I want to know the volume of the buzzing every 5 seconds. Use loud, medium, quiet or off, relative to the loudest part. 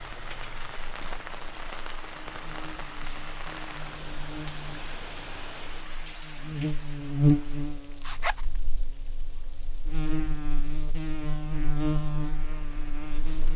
quiet, loud, loud.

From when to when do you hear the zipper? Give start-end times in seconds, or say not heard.
8.0-8.6.